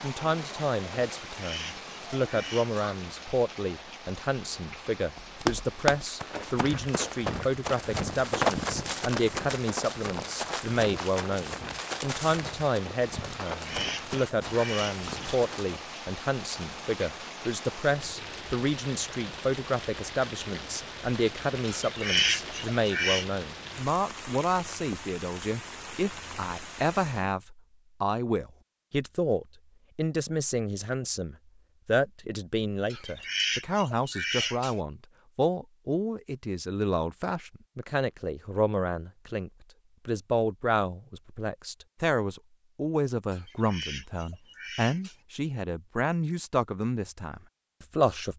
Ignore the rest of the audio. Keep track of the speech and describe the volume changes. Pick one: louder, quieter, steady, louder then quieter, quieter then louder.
steady.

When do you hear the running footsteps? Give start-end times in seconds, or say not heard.
5.2-15.8.